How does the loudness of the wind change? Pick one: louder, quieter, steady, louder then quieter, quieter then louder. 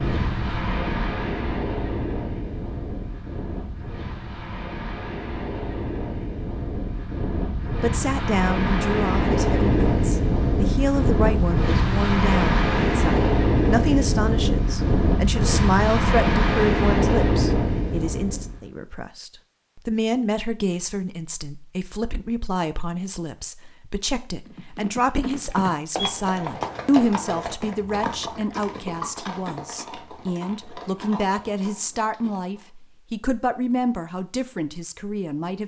louder.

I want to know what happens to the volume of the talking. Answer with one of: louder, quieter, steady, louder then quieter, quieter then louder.
steady.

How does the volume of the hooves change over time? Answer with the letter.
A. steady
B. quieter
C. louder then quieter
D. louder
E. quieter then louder
B.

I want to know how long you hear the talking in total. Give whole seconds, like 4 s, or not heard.
28 s.